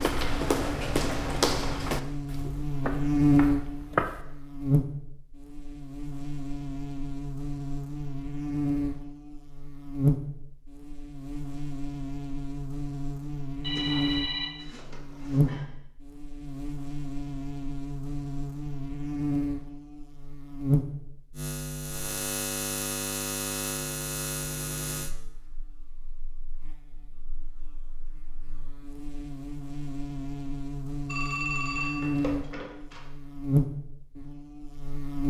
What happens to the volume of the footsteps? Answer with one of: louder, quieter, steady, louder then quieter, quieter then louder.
quieter.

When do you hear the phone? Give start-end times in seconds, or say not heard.
13.6-15.7, 31.1-33.0.